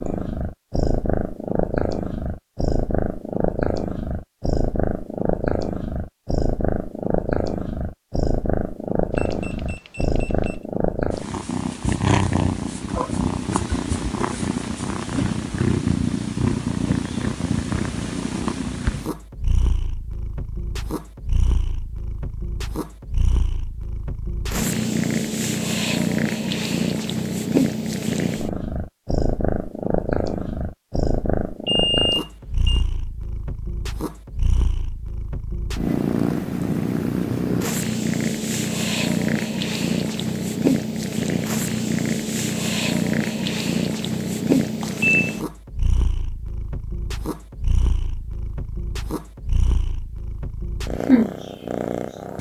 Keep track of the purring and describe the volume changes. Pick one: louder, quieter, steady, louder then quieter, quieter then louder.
steady.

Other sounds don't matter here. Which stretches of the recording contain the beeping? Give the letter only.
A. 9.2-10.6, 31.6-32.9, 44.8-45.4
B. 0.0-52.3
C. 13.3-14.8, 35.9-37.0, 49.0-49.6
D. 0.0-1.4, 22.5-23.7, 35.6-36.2
A.